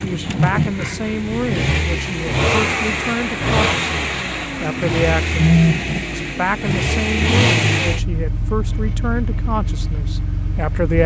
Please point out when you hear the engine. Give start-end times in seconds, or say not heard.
0.0-11.0.